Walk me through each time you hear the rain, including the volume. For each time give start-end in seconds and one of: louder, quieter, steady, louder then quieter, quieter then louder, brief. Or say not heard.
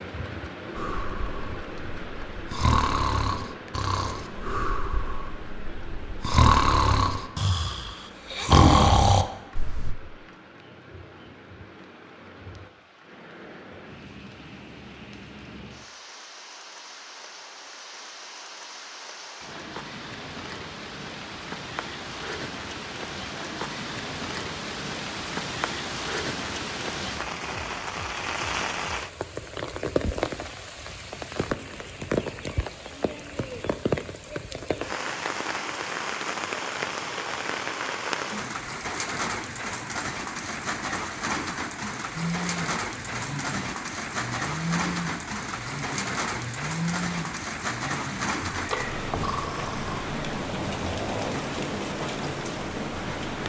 0.0-53.4 louder.